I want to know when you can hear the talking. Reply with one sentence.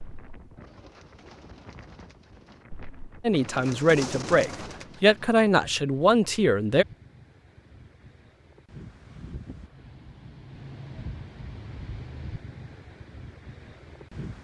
You can hear the talking from 3.2 to 6.8 s.